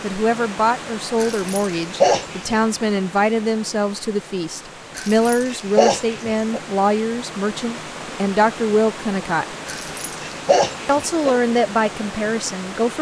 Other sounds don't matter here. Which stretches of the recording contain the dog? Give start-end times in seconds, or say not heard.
1.1-2.6, 5.0-6.6, 9.7-11.4.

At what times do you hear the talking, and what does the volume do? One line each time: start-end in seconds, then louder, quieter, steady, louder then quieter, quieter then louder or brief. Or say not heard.
0.0-9.6 steady
10.8-12.9 brief.